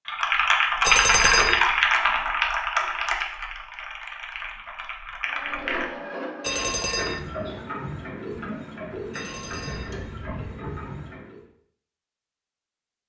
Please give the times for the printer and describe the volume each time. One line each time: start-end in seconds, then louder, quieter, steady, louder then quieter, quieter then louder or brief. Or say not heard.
5.3-11.4 steady.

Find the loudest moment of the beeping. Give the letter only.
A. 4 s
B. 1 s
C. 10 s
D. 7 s
B.